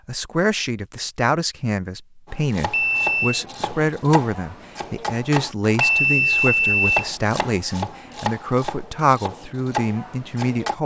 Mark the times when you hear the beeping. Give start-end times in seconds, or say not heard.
2.7-3.5, 5.8-7.1.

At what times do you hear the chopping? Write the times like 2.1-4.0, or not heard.
2.2-10.8.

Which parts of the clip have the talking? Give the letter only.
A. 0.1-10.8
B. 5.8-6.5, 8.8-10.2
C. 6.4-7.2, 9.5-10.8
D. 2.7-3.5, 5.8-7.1
A.